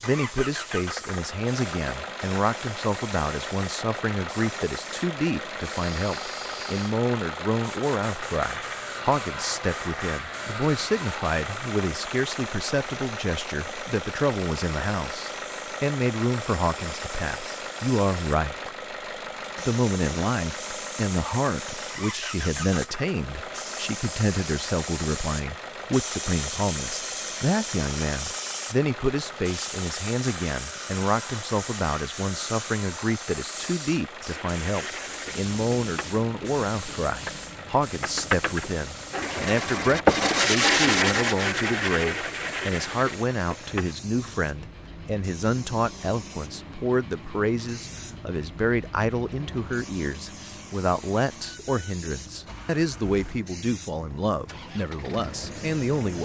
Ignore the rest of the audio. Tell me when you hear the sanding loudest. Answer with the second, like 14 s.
40 s.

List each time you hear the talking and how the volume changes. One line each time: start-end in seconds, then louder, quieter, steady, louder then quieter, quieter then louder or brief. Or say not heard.
0.0-18.7 steady
19.6-56.2 steady.